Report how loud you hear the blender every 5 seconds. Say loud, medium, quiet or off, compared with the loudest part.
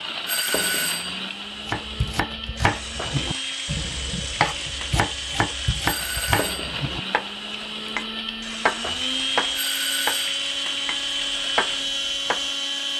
medium, loud, loud.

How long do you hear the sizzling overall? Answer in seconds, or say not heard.
13 s.